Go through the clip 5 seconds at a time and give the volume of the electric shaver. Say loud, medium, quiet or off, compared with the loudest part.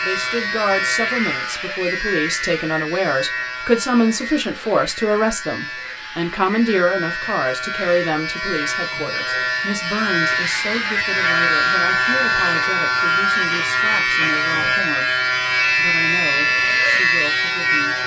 medium, medium, loud, loud.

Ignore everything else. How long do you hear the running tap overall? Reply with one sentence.
The running tap can't be heard in this clip.